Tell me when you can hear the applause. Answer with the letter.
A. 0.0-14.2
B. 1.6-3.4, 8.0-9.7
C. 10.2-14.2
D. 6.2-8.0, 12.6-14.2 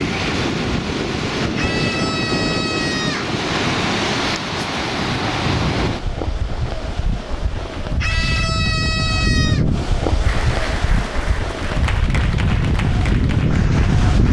C.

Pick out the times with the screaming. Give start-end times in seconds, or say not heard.
1.6-3.4, 8.0-9.7.